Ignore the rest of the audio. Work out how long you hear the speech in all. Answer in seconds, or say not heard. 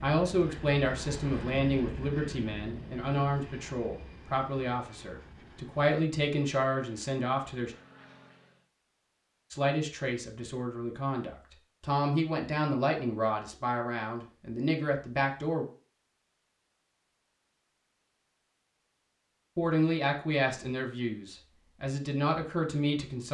18 s.